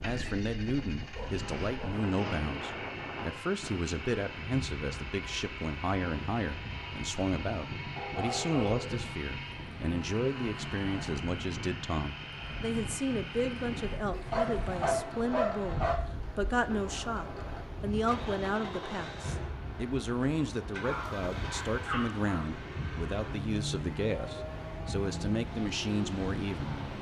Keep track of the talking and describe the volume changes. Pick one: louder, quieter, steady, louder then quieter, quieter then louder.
steady.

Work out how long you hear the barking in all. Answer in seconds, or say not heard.
5 s.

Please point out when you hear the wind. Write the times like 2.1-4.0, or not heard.
0.0-26.9.